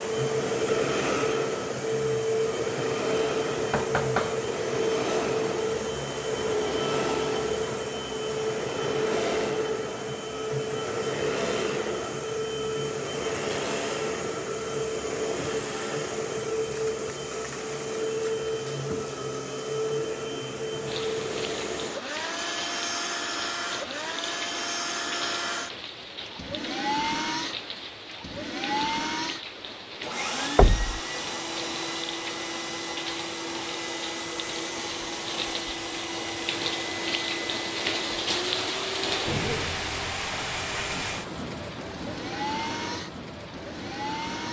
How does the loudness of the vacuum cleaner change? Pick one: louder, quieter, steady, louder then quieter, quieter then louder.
quieter.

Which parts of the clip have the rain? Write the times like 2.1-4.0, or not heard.
20.9-44.4.